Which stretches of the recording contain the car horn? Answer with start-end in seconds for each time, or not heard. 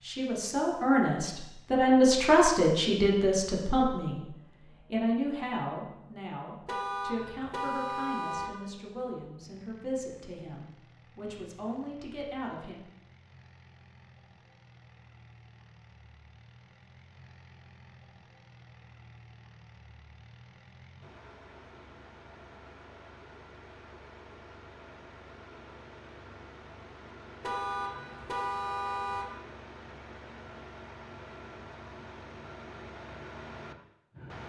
6.7-8.5, 27.4-29.4.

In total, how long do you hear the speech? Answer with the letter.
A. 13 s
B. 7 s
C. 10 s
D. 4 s
A.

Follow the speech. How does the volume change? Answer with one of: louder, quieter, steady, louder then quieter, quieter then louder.
quieter.